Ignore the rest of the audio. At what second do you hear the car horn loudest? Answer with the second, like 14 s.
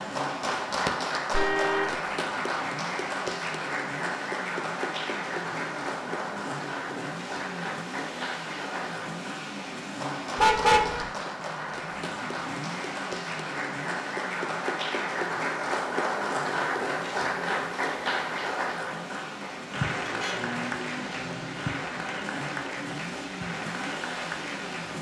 11 s.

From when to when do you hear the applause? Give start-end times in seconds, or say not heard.
0.0-24.9.